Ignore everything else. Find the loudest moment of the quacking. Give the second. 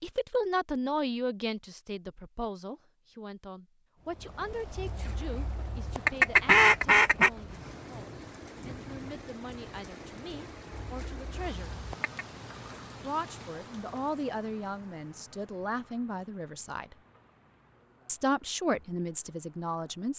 7 s.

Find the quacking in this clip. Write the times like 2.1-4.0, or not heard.
4.8-7.3, 10.8-12.2.